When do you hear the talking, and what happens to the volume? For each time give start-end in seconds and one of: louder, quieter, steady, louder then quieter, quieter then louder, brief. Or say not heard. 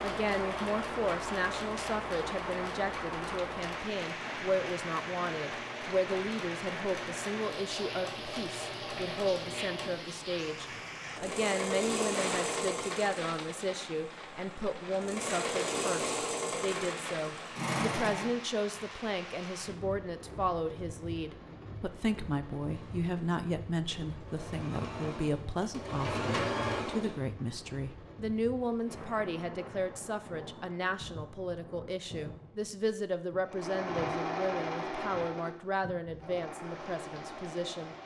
0.0-38.0 steady.